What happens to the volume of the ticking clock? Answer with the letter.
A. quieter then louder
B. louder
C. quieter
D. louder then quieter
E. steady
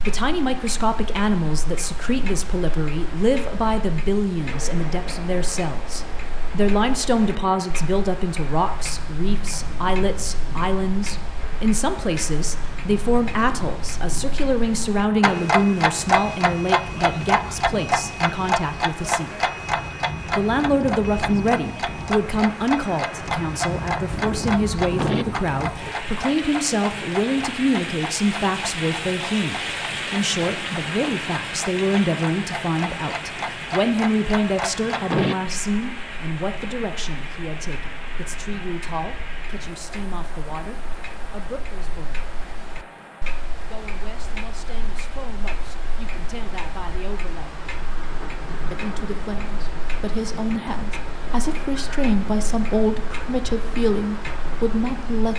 D.